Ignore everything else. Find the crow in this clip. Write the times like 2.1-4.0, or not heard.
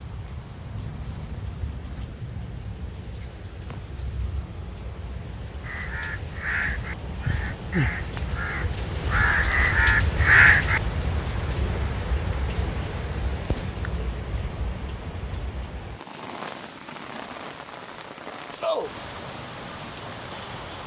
5.6-10.8.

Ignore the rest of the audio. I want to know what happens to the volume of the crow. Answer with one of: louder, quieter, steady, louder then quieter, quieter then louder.
louder.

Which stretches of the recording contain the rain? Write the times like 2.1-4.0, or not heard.
0.0-20.8.